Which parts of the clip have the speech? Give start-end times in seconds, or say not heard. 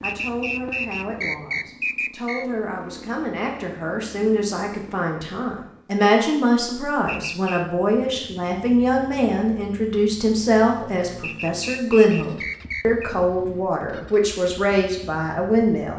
0.0-15.9.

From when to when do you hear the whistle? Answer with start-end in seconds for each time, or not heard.
0.0-2.5, 7.0-7.7, 11.2-13.2.